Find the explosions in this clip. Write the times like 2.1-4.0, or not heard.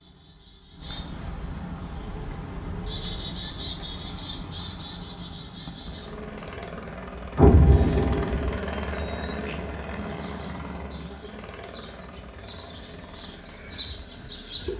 7.3-8.6.